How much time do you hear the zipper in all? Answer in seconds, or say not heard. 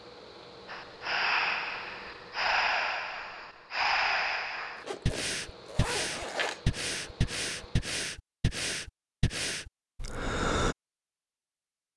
2 s.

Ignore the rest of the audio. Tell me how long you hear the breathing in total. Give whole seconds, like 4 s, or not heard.
10 s.